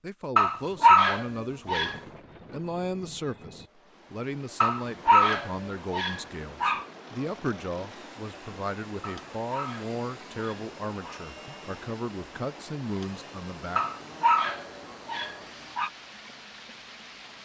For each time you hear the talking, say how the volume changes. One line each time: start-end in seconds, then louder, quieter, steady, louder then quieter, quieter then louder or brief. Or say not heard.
0.0-13.8 steady.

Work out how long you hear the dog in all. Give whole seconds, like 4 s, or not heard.
8 s.